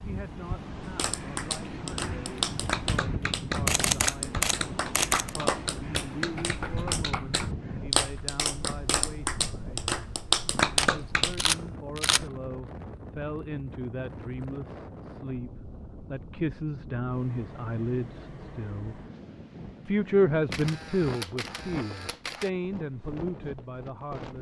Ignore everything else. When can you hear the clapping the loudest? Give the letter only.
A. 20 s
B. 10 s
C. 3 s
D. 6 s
B.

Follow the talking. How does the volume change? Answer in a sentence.
The loudness of the talking goes up.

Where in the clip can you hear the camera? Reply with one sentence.
The camera can be heard from 3.6 to 5.3 s, from 10.8 to 12.2 s and from 20.5 to 22.5 s.